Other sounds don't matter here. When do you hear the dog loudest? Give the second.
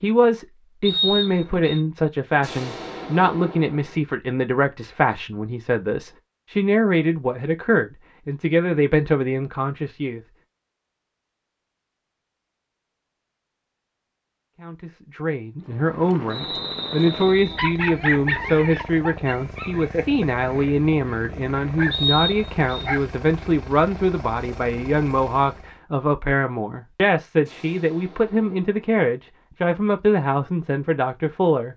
18 s.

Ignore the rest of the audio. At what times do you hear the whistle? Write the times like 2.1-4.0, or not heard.
0.8-1.8, 16.3-17.8, 21.9-22.9.